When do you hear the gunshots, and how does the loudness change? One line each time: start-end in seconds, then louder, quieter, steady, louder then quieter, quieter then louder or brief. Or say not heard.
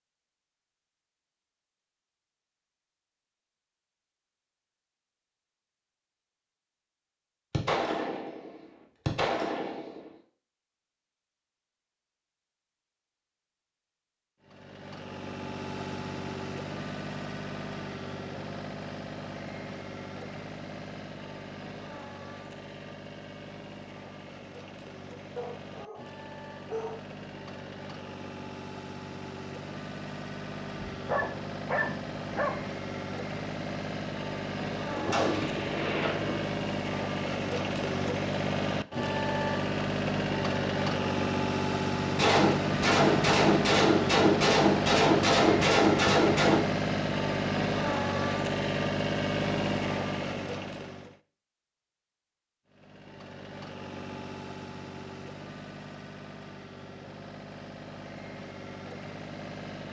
7.5-10.1 brief
34.9-36.5 brief
42.1-46.6 steady.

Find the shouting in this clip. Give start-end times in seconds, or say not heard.
not heard.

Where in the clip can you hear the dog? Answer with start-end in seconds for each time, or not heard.
25.4-27.1, 30.9-32.6.